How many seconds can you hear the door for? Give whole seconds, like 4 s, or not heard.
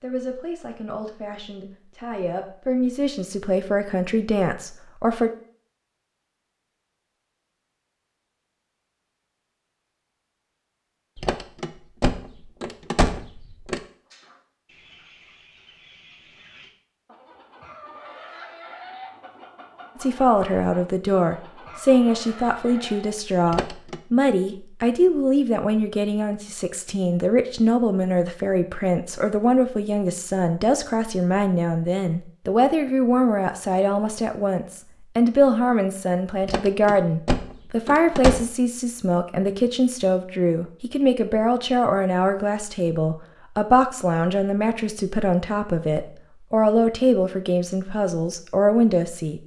5 s.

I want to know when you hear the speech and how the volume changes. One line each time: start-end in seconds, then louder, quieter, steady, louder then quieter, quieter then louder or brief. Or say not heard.
0.0-5.3 louder
19.9-49.4 steady.